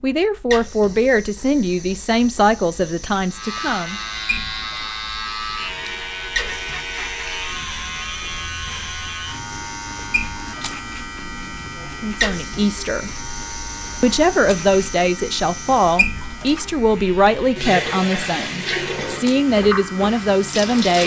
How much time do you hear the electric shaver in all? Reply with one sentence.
You can hear the electric shaver for 18 seconds altogether.